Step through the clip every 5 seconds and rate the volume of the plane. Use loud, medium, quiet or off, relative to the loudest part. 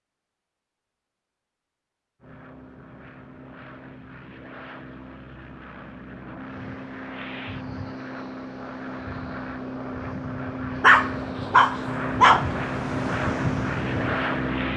quiet, medium, loud.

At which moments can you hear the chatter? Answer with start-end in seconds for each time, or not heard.
not heard.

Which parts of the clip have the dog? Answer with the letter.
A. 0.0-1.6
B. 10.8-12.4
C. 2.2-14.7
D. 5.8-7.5
B.